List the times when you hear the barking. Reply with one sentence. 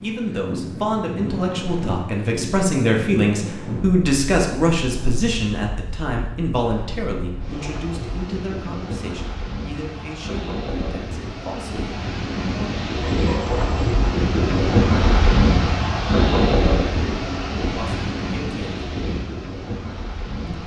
You can hear the barking from 13.0 to 13.9 s.